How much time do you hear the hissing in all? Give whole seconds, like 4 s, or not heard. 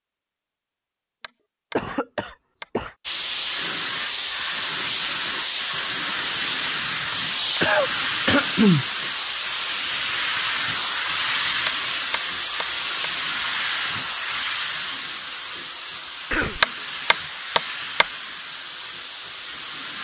17 s.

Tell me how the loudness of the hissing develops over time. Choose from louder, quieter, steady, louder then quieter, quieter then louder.
quieter.